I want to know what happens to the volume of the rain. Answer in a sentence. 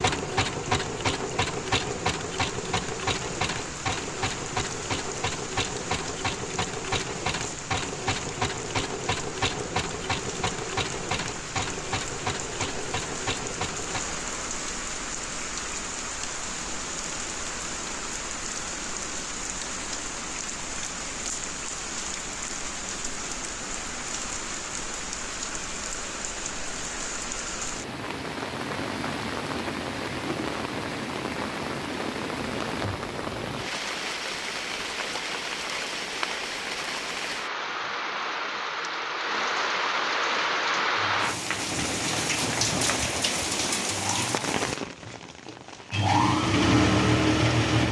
The volume of the rain goes up.